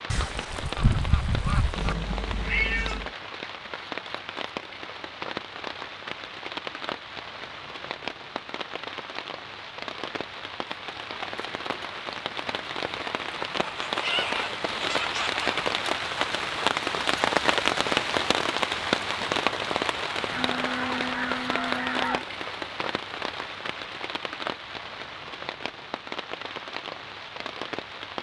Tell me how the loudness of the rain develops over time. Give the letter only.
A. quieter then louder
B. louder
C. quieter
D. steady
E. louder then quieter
E.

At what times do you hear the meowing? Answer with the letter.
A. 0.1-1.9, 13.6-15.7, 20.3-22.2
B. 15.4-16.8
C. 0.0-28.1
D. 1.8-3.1
D.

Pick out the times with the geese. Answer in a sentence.
The geese can be heard from 0.1 to 1.9 s, from 13.6 to 15.7 s and from 20.3 to 22.2 s.